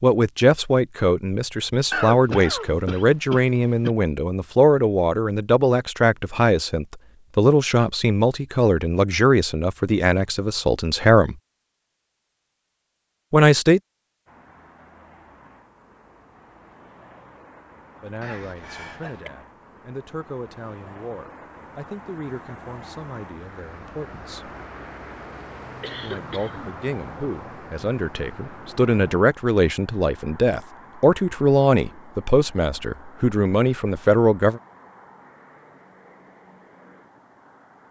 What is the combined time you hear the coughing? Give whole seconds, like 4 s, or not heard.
4 s.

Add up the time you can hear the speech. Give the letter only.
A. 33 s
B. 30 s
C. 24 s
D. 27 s
D.